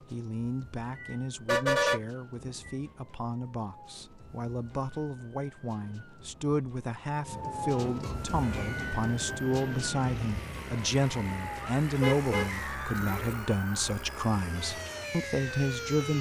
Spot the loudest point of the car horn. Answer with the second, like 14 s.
2 s.